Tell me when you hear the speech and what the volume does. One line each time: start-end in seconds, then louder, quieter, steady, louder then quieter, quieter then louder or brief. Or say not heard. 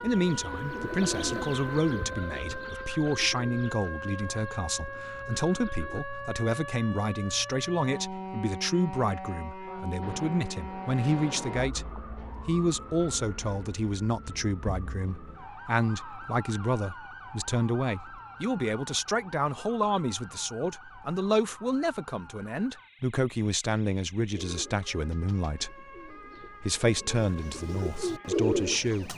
0.0-29.1 steady.